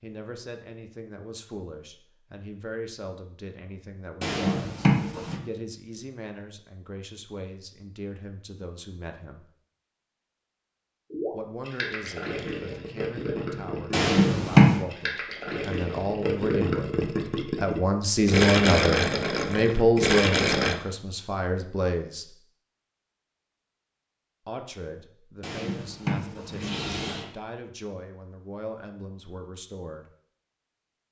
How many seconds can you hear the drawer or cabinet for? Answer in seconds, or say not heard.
4 s.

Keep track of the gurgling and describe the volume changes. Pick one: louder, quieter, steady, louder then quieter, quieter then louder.
louder.